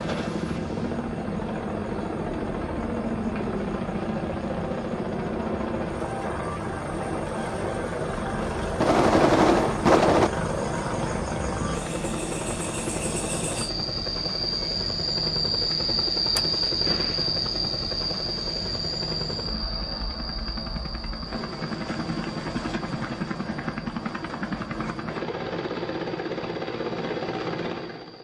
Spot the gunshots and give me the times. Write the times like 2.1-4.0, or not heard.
8.8-10.3, 16.4-17.3.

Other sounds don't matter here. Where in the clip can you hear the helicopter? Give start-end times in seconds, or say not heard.
0.0-28.1.